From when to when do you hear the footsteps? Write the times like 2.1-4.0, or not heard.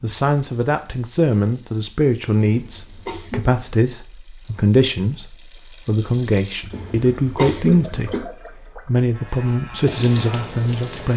not heard.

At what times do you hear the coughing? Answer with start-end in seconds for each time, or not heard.
2.4-3.6, 6.7-8.2.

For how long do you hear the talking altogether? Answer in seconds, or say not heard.
11 s.